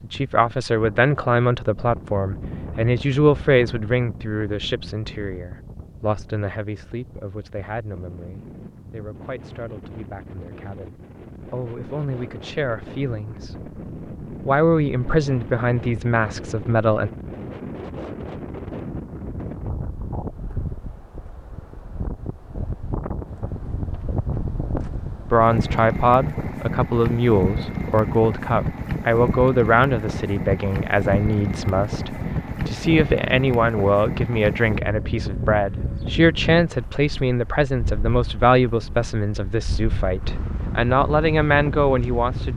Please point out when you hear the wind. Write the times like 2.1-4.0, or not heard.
0.0-42.5.